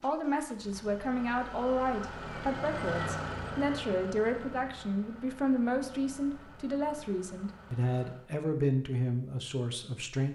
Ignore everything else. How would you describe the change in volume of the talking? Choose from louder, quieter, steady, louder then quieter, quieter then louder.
steady.